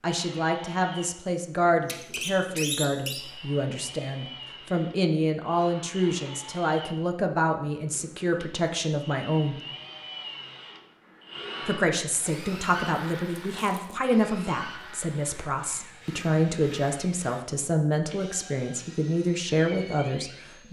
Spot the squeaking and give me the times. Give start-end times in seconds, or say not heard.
1.8-3.2, 13.5-13.9.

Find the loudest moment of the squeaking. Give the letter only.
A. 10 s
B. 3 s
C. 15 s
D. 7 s
B.